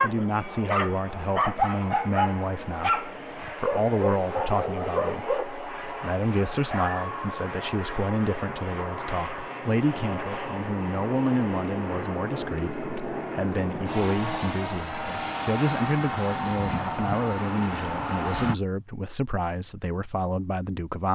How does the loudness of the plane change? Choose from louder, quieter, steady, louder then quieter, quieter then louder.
louder.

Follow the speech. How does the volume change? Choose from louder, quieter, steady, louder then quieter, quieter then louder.
steady.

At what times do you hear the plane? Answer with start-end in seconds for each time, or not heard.
0.0-18.6.